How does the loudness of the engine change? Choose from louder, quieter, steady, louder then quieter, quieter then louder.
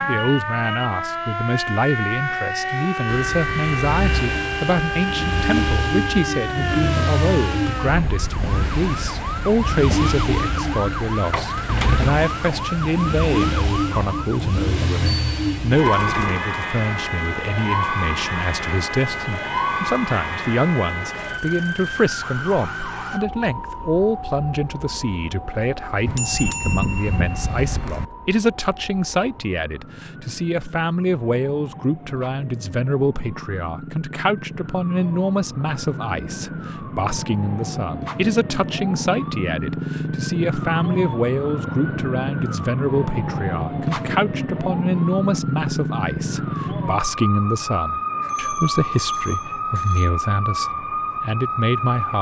quieter.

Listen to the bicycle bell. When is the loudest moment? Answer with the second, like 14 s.
27 s.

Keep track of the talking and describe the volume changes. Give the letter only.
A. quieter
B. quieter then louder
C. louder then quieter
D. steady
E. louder
D.